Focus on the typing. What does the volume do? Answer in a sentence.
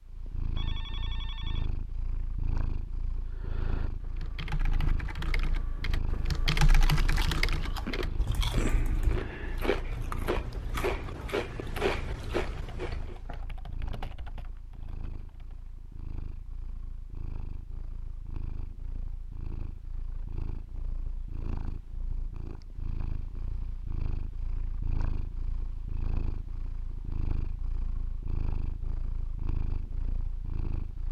The loudness of the typing goes up, then down.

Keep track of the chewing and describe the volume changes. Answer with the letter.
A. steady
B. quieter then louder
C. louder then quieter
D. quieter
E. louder
E.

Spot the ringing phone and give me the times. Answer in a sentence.
The ringing phone can be heard from 0.6 to 1.8 s.